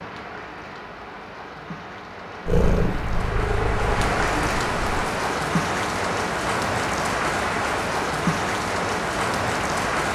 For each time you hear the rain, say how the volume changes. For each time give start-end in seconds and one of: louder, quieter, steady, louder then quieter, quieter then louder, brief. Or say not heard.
0.0-10.1 louder.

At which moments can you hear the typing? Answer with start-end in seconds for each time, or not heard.
not heard.